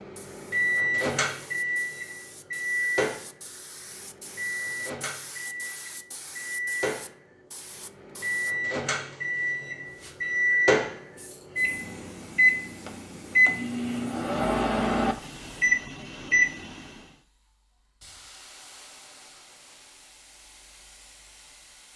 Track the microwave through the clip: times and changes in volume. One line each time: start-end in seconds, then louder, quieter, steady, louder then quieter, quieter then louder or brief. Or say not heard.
0.0-16.9 quieter then louder.